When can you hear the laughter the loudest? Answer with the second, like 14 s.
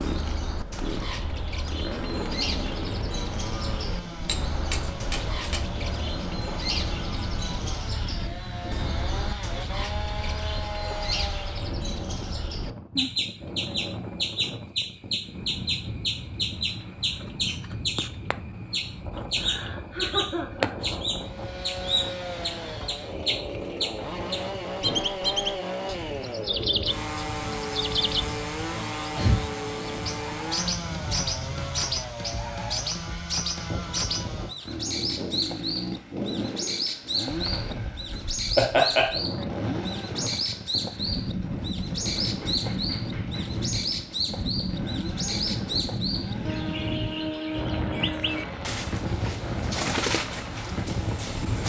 39 s.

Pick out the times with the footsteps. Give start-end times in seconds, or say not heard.
not heard.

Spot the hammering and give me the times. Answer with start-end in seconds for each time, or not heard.
4.2-5.8, 42.2-43.6.